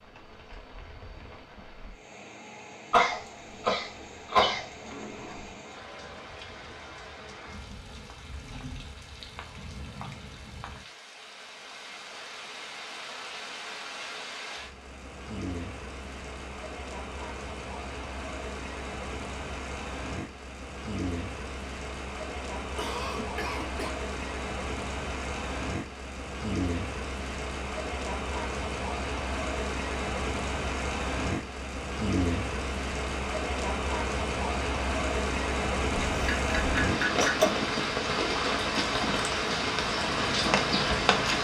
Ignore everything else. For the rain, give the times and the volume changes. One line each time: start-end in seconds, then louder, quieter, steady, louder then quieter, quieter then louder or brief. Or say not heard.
0.0-41.4 louder.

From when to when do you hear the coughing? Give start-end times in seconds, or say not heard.
2.9-5.5, 22.6-23.9, 36.1-37.5.